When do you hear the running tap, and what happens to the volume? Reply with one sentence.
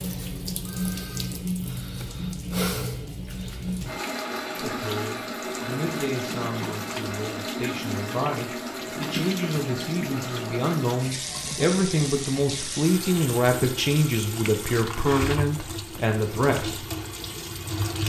The running tap can be heard from 0.0 to 18.0 s, at a steady volume.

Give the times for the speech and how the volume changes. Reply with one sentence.
You can hear the speech from 4.5 to 16.9 s, getting louder.